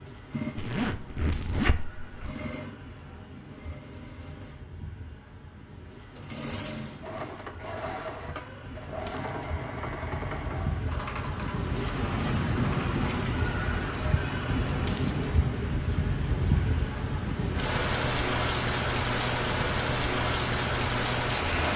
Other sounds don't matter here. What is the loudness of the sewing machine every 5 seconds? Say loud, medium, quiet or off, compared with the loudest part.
loud, loud, loud, off, off.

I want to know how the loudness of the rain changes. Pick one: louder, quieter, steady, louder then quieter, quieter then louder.
louder.